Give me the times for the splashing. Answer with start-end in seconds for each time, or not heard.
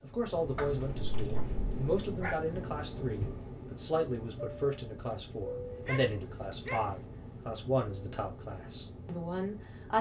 not heard.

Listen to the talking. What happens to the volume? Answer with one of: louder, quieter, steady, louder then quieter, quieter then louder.
steady.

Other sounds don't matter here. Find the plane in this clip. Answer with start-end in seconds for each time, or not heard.
0.0-9.9.